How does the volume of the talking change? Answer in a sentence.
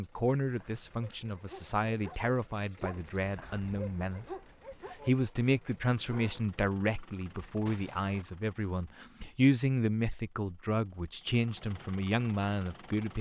The volume of the talking stays about the same.